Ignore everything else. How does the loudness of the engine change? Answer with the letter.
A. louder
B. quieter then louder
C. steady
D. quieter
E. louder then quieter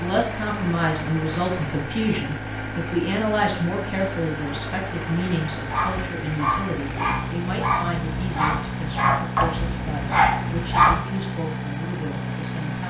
C.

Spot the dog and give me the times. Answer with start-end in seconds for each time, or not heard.
5.7-11.0.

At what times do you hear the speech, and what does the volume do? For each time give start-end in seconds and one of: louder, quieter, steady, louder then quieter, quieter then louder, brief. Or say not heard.
0.0-12.8 quieter.